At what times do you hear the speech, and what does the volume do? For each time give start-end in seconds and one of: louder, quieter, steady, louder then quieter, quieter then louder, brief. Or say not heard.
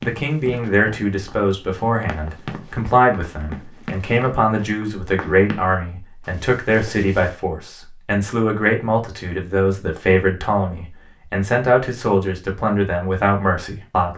0.0-14.1 steady.